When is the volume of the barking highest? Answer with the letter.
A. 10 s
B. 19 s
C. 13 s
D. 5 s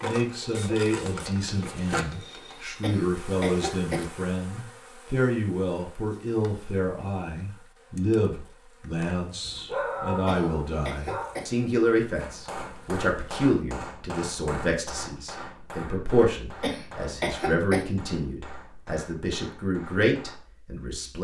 A.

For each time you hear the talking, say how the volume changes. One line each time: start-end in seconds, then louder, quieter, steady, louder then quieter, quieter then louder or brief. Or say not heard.
0.0-21.2 steady.